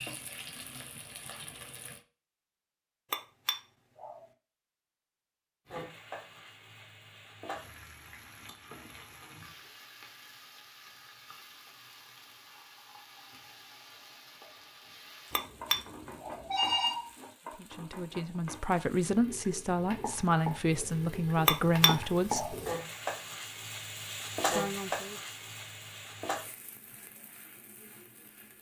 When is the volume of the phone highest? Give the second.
17 s.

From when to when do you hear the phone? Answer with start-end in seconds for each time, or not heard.
15.3-17.1.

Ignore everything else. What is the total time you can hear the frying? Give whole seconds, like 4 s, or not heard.
25 s.